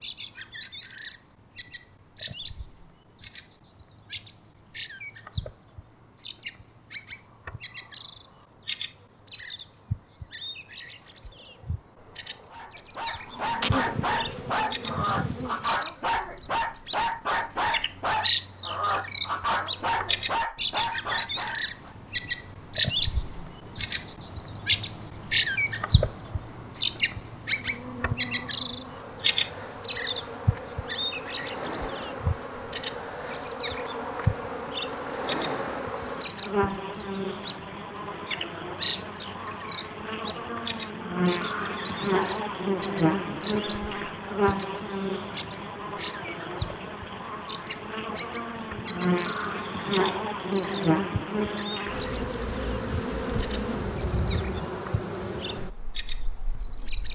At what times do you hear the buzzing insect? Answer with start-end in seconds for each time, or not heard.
13.2-15.8, 27.6-57.0.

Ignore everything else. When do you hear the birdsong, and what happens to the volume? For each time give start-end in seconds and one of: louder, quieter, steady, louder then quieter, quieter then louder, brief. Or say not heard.
0.0-57.0 louder then quieter.